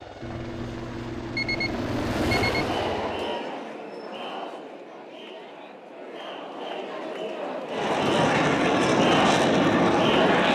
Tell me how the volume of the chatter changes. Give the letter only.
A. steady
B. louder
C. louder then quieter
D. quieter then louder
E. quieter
D.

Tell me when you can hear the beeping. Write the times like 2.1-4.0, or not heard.
0.2-2.6.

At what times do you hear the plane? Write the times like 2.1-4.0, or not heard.
0.0-3.4, 7.7-10.5.